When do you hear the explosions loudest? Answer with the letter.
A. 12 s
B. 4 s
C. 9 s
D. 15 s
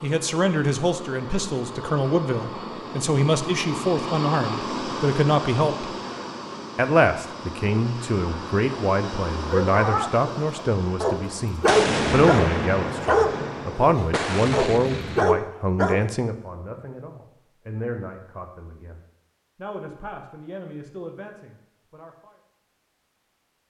A.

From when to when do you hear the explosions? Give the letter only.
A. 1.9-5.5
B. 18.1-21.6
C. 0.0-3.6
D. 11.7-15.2
D.